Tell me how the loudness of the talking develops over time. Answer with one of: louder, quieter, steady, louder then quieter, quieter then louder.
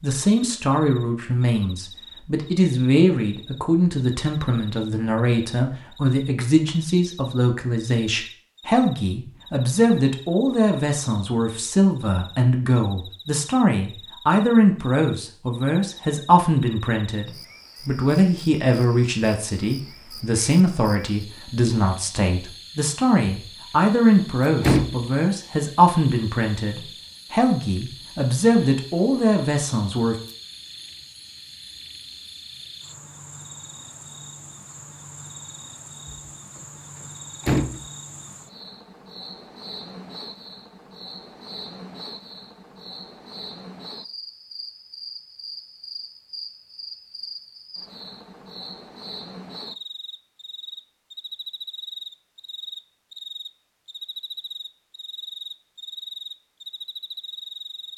steady.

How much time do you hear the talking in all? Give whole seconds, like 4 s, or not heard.
30 s.